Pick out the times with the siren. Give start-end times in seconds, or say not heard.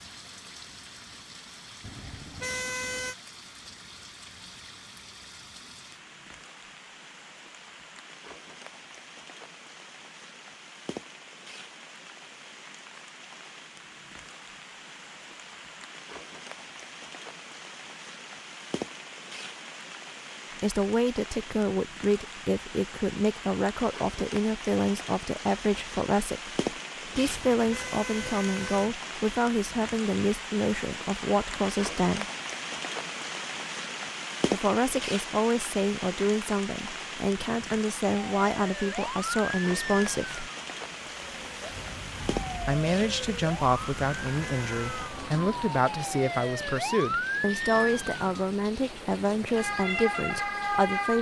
38.1-51.1.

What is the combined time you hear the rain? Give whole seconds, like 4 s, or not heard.
51 s.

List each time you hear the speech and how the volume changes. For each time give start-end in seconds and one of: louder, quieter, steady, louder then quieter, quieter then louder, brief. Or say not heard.
20.6-32.2 steady
34.5-40.5 steady
42.6-51.1 steady.